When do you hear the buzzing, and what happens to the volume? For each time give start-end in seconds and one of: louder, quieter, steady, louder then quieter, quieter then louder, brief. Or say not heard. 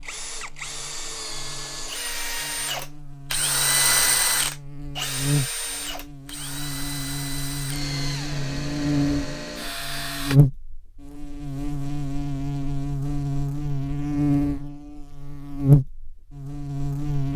0.0-17.3 louder.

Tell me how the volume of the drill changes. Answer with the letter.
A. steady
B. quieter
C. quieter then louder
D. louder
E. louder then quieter
E.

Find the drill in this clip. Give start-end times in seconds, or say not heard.
0.0-10.4.